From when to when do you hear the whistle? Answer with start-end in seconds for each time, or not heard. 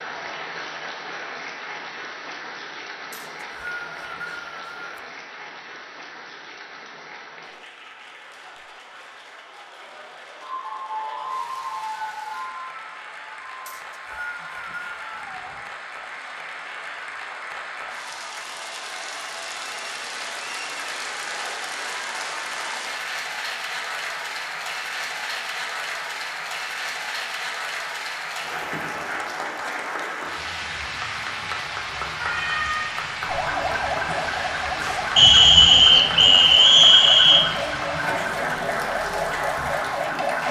3.1-4.9, 13.7-15.2, 35.1-37.5.